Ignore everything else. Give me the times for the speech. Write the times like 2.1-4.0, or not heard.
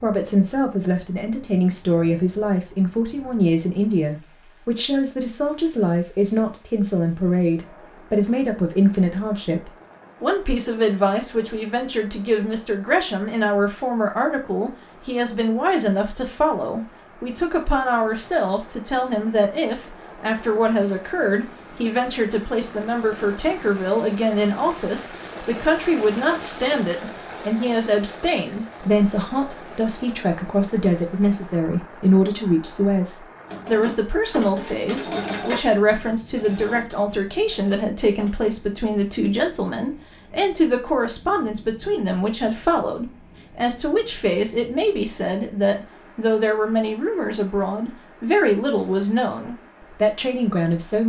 0.0-51.0.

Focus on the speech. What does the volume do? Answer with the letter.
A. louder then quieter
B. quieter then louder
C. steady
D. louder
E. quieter
C.